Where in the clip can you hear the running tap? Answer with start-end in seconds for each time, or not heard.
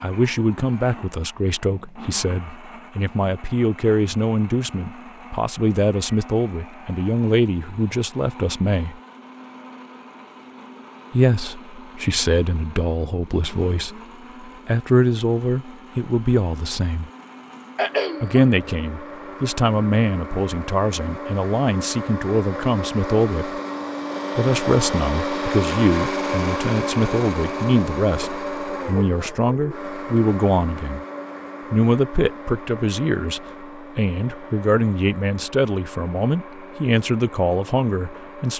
not heard.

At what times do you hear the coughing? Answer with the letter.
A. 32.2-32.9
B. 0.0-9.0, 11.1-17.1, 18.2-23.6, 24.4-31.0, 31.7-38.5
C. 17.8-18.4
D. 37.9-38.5
C.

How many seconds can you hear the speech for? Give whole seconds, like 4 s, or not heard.
34 s.